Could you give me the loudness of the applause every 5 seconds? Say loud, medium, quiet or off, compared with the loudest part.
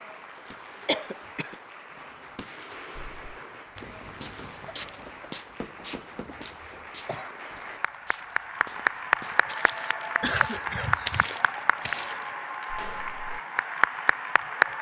quiet, loud, loud.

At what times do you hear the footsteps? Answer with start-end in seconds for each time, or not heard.
3.0-13.4.